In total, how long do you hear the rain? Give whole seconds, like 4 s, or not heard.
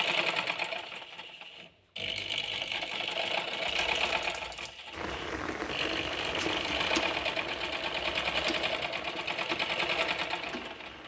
6 s.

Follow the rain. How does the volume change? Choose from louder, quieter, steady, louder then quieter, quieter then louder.
quieter.